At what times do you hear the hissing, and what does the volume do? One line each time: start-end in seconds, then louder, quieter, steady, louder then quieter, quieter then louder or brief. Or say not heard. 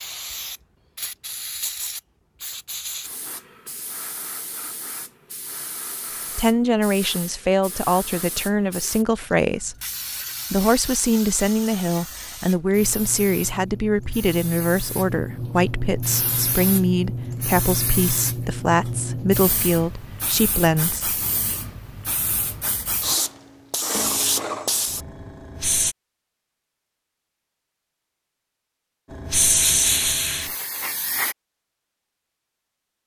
0.0-25.9 louder
29.1-31.4 brief.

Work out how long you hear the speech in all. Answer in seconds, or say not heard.
14 s.